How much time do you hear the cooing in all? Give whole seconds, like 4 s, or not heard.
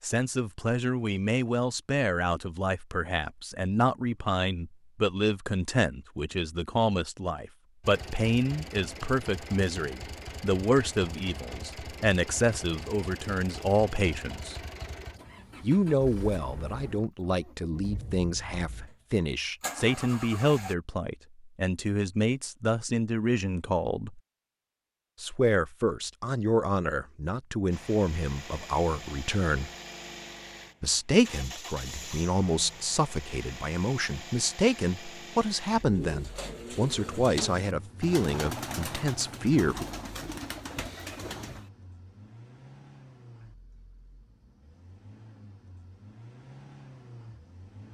6 s.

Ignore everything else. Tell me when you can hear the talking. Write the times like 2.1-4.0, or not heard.
0.0-14.6, 15.6-24.2, 25.2-29.7, 30.8-39.9.